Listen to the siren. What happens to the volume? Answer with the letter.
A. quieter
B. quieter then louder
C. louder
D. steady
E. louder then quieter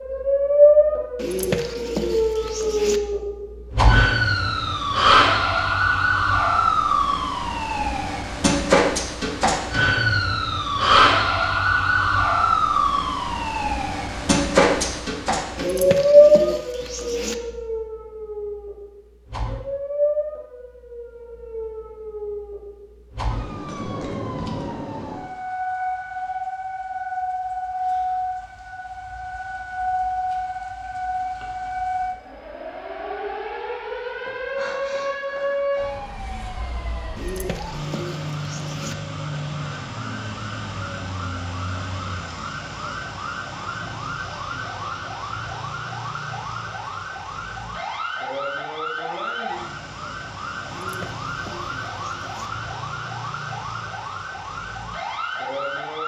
A.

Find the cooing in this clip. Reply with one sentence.
The cooing can be heard from 1.1 to 3.0 s, from 15.6 to 17.4 s, from 37.1 to 39.0 s and from 50.6 to 52.5 s.